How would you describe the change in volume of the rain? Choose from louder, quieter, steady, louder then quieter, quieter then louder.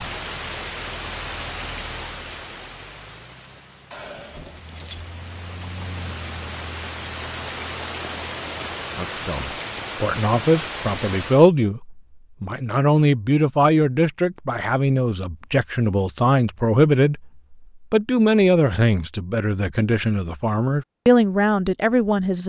quieter then louder.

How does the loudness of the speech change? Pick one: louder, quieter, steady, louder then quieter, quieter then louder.
steady.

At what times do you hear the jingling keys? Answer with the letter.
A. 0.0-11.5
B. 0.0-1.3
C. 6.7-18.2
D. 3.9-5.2
D.